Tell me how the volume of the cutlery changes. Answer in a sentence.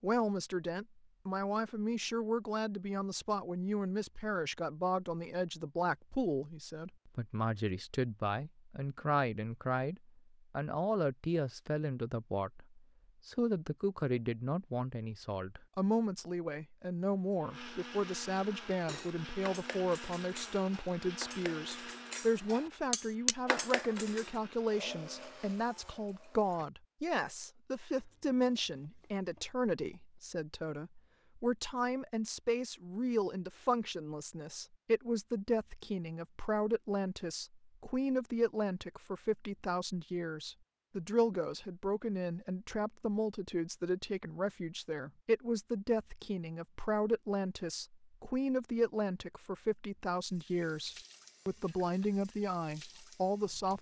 The volume of the cutlery goes up.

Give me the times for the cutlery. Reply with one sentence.
The cutlery can be heard from 18.9 to 24.4 s.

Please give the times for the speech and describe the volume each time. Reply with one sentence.
The speech can be heard from 0.0 to 53.7 s, at a steady volume.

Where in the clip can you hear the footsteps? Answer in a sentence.
The footsteps can't be heard in this clip.